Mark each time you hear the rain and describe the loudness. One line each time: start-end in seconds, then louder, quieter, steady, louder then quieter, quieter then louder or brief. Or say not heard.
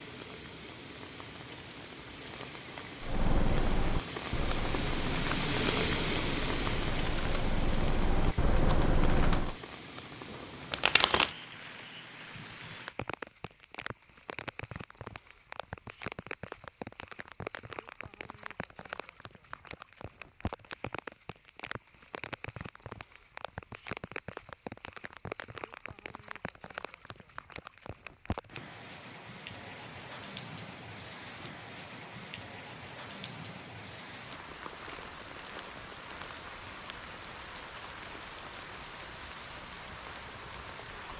0.0-41.1 quieter.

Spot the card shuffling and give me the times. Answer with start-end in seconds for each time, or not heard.
10.3-11.3.